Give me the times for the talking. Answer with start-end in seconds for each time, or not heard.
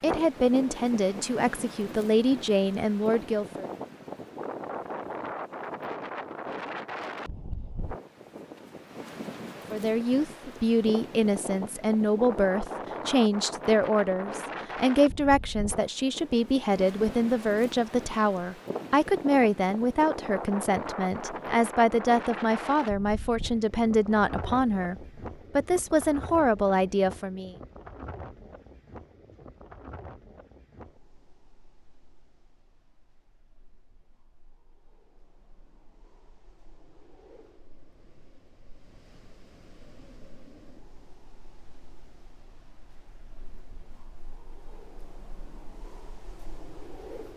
0.0-3.7, 9.7-27.6.